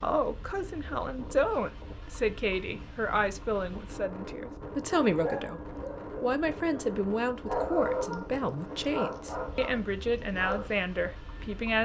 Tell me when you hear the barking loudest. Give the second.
8 s.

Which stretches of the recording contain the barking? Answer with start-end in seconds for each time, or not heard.
4.8-10.8.